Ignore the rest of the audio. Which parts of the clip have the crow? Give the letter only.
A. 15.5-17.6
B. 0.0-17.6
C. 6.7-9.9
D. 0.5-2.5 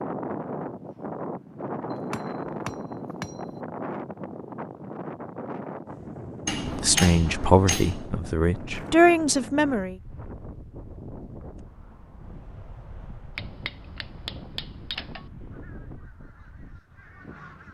A.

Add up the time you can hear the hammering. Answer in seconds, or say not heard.
5 s.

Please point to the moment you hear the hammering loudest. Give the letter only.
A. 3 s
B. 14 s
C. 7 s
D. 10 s
C.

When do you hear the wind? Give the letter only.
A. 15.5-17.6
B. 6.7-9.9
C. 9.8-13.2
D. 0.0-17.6
D.